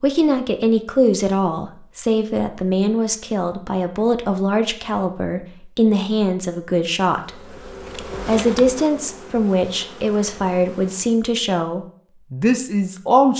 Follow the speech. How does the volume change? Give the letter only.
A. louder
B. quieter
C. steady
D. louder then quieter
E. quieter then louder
C.